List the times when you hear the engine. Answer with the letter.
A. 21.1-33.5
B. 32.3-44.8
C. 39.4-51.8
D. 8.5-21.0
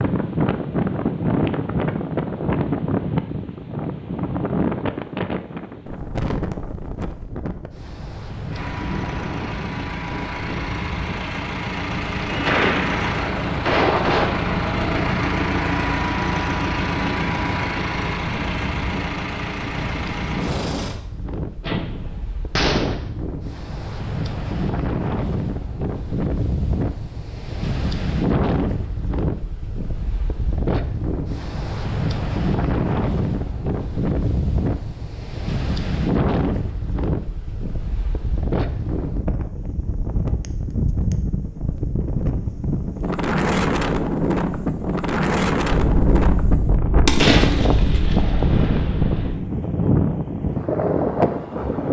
D.